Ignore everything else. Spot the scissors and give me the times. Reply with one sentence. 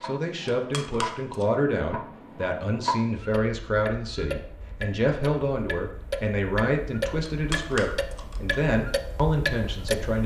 The scissors can be heard from 0.5 to 1.4 s and from 7.2 to 8.6 s.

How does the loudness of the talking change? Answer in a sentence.
The volume of the talking stays about the same.